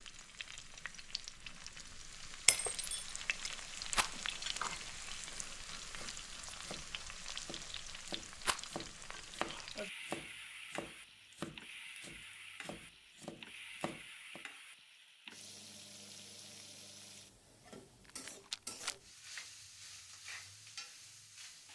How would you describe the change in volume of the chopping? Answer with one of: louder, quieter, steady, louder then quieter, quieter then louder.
louder then quieter.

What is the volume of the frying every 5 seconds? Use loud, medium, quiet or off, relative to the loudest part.
loud, loud, medium, medium, medium.